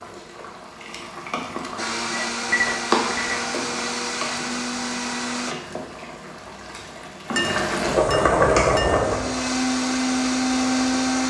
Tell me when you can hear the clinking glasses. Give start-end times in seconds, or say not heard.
2.1-3.5, 7.3-9.1.